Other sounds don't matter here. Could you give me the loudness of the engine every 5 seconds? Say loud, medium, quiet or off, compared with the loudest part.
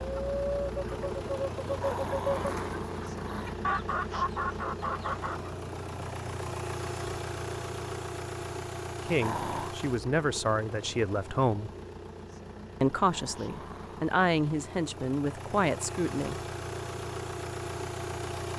loud, loud, medium, loud.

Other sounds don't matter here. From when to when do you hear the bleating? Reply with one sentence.
The bleating can't be heard in this clip.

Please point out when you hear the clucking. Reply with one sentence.
The clucking can be heard from 0.0 to 5.5 s.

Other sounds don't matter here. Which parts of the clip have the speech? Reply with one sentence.
The speech can be heard from 9.1 to 11.7 s and from 12.8 to 16.4 s.